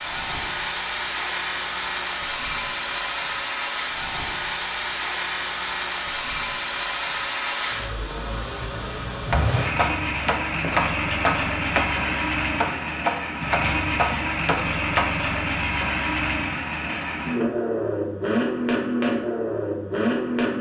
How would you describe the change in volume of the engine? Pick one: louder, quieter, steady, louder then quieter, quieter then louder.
steady.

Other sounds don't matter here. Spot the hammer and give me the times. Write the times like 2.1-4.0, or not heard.
9.2-15.1.